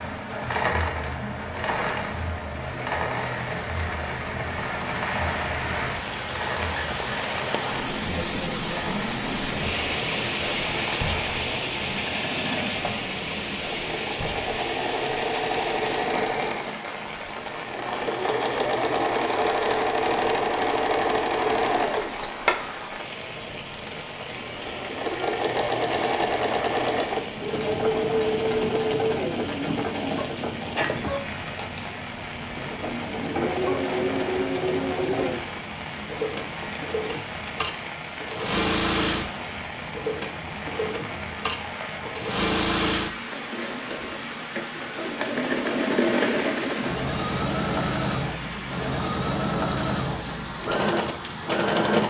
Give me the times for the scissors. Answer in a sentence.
You can hear the scissors from 22.0 to 22.6 s.